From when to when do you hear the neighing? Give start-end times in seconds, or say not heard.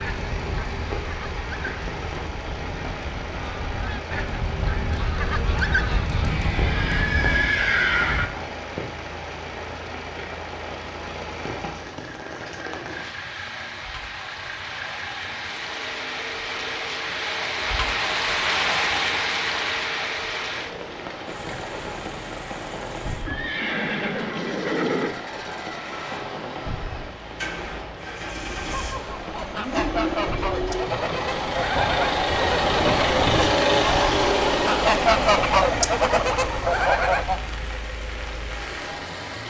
6.2-8.2, 23.2-25.1.